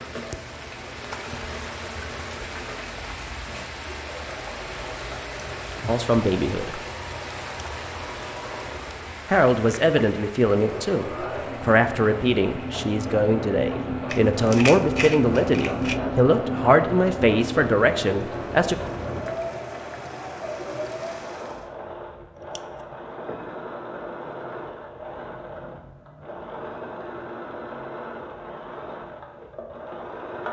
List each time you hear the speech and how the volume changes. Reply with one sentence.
You can hear the speech briefly from 5.8 to 6.8 s; and from 9.2 to 18.8 s, at a steady volume.